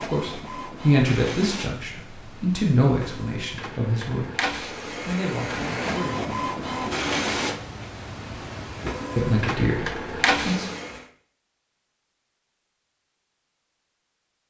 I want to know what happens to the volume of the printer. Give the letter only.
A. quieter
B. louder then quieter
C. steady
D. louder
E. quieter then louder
D.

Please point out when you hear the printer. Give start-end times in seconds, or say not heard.
0.0-11.1.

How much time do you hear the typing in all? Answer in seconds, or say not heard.
not heard.